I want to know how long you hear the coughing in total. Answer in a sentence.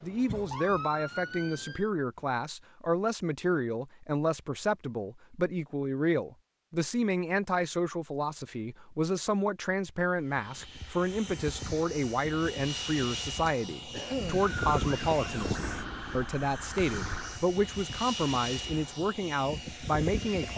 The coughing can be heard for 2 seconds in total.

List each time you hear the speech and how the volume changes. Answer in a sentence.
The speech can be heard from 0.0 to 20.5 s, at a steady volume.